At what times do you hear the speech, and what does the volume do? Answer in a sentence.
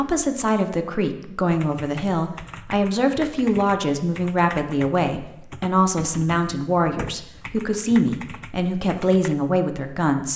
The speech can be heard from 0.0 to 10.3 s, at a steady volume.